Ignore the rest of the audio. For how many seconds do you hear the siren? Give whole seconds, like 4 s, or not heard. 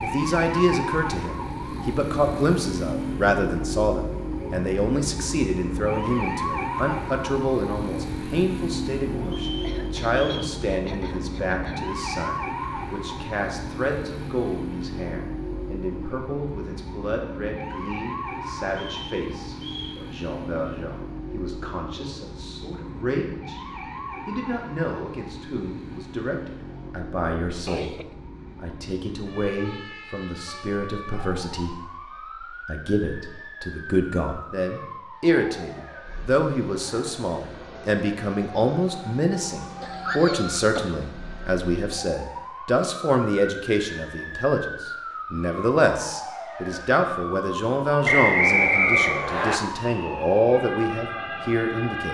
52 s.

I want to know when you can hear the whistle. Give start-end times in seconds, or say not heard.
9.2-10.6, 18.7-20.0, 48.0-49.6.